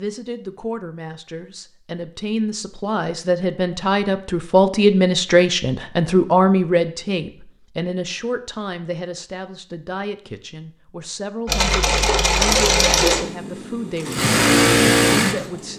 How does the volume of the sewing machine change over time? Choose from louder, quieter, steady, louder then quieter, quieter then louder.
quieter then louder.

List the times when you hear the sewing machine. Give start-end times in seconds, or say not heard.
11.4-15.7.